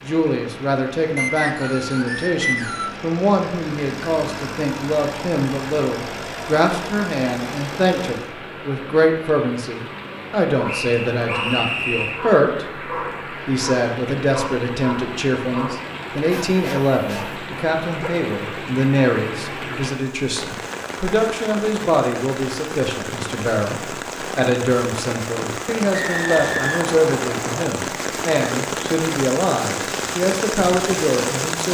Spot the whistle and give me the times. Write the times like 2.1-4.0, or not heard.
1.1-3.0, 10.7-12.2, 25.9-27.6.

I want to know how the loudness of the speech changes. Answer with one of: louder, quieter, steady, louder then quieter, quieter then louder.
steady.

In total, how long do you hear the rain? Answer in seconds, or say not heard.
32 s.